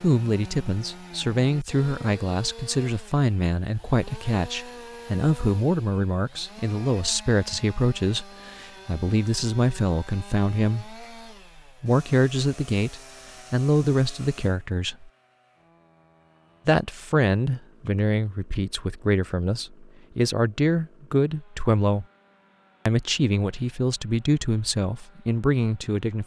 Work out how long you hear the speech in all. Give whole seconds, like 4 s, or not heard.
23 s.